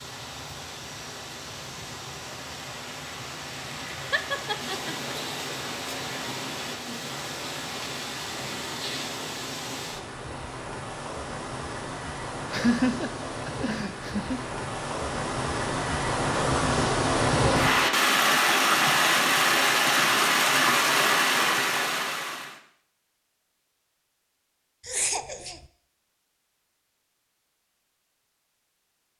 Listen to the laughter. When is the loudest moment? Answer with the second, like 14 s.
13 s.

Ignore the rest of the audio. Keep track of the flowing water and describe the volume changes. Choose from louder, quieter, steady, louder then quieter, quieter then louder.
louder.